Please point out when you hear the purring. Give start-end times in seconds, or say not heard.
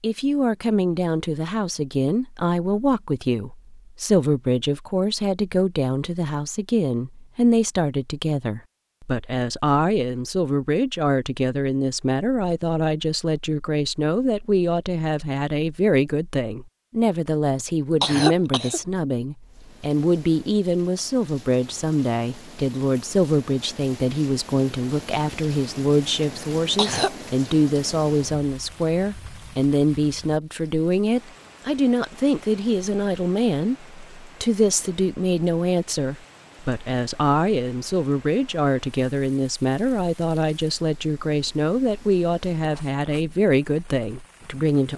not heard.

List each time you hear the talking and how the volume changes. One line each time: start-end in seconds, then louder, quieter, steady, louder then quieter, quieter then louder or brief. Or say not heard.
0.0-44.9 steady.